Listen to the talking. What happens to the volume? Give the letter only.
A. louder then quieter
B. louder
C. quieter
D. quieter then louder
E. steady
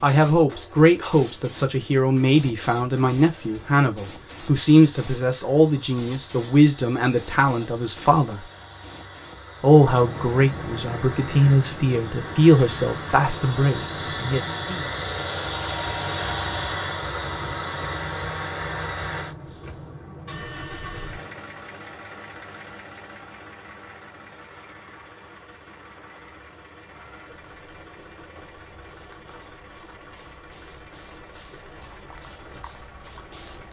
E.